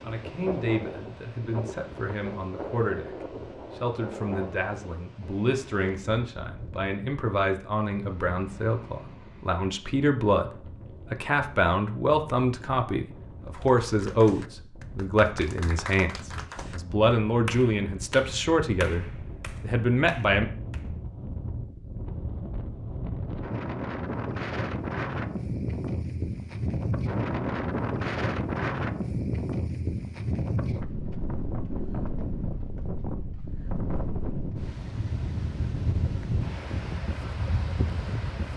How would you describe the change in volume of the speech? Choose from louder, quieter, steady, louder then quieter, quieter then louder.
louder.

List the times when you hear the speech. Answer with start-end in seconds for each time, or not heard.
0.0-20.5.